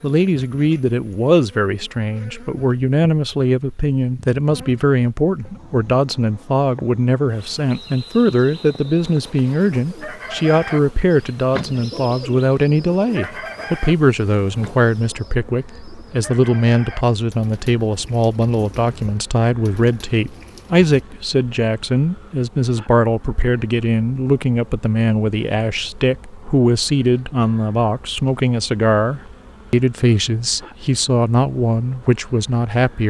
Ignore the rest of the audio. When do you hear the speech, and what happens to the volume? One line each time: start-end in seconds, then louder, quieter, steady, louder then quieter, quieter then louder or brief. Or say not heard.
0.0-33.0 steady.